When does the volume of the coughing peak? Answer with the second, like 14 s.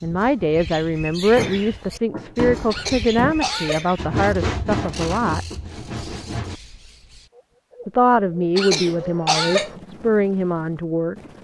9 s.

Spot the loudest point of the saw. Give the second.
4 s.